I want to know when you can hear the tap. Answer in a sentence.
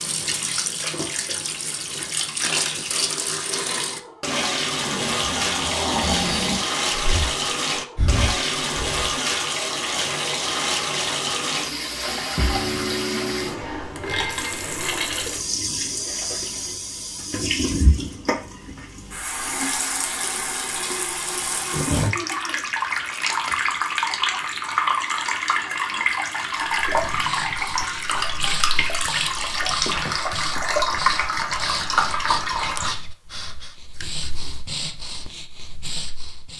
The tap can be heard from 0.0 to 33.0 s.